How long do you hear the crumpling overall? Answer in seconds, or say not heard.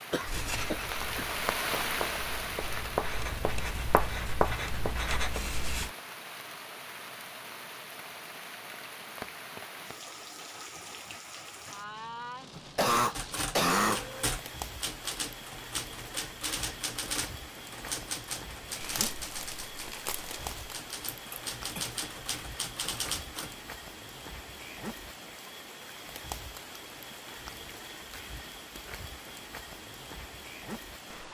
2 s.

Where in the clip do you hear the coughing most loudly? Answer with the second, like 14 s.
14 s.